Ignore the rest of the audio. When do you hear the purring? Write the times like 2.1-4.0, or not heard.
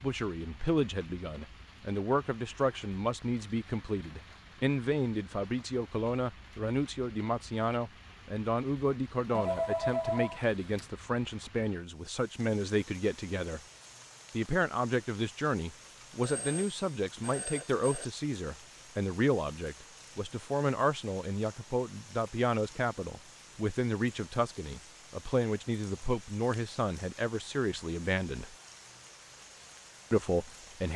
not heard.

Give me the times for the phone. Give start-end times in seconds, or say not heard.
9.3-10.8, 16.2-18.1.